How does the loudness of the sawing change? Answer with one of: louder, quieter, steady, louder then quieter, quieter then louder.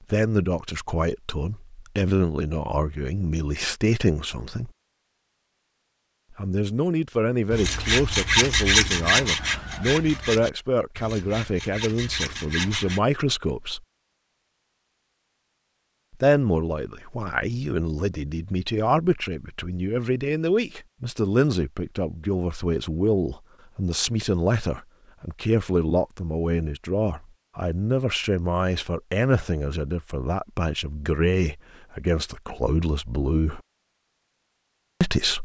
quieter then louder.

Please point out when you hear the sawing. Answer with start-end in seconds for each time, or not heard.
7.5-13.0.